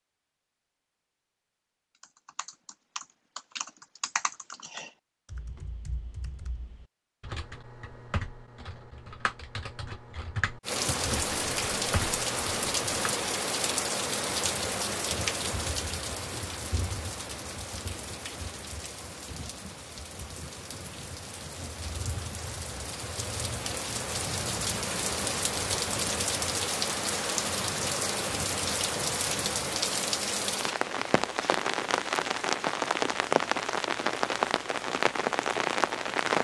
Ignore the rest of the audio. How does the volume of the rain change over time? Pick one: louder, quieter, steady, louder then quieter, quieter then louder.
quieter then louder.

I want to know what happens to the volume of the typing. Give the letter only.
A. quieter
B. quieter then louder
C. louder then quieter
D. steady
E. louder
B.